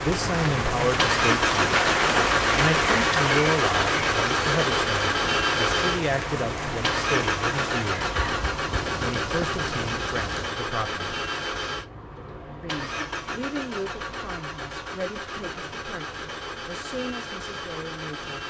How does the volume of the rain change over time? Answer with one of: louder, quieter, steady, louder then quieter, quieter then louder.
quieter.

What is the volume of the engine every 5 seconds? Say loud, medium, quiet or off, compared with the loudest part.
loud, loud, medium, medium.